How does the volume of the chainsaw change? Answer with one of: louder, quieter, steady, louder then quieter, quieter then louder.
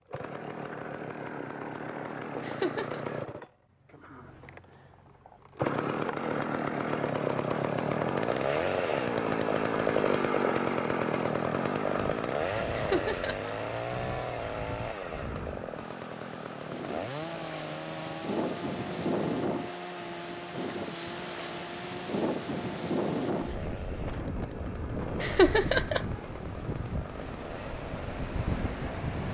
louder then quieter.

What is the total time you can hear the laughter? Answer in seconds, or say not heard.
2 s.